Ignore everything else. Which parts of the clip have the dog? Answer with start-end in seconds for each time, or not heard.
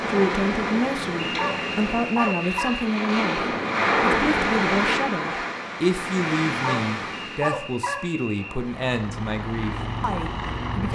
1.3-2.7, 6.5-8.2.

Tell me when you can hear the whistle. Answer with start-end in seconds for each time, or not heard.
1.3-2.9, 7.3-8.6.